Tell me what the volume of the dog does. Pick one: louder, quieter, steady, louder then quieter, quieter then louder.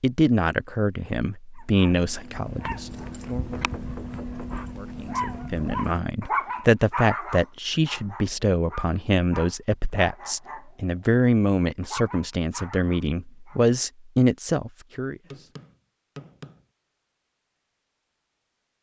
louder then quieter.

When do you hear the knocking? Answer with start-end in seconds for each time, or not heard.
3.5-4.5, 15.3-16.6.